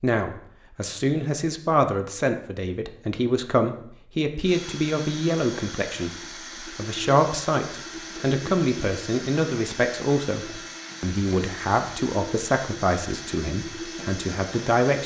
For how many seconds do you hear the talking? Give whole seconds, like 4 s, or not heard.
15 s.